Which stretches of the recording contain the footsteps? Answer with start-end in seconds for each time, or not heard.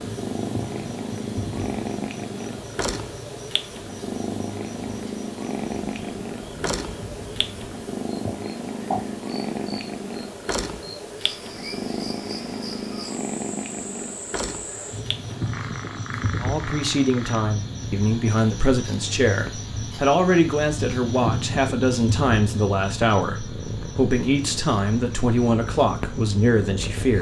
not heard.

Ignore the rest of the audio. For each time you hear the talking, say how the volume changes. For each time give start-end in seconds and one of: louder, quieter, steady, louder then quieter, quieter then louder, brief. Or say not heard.
16.4-27.1 steady.